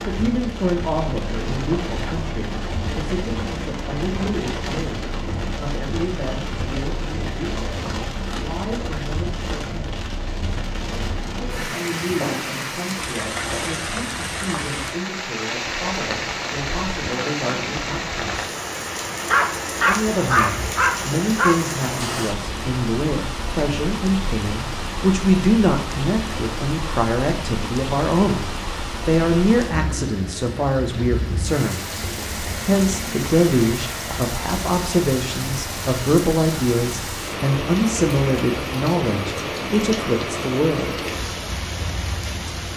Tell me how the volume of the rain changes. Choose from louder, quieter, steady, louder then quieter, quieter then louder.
steady.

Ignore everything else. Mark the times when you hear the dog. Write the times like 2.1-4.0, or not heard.
19.2-21.6.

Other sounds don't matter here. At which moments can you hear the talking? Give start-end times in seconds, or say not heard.
0.0-10.1, 11.2-18.4, 19.9-28.4, 29.1-31.9, 32.6-41.0.